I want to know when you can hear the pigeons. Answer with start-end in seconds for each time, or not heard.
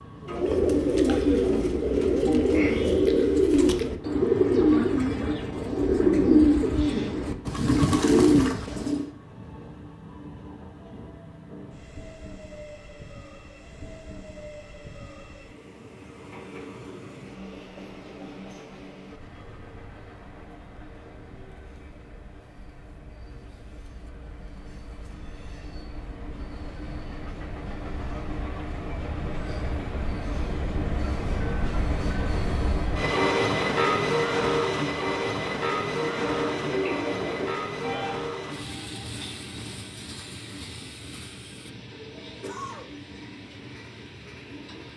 0.2-9.1, 35.9-38.3.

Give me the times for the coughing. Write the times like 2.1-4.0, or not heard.
42.4-42.9.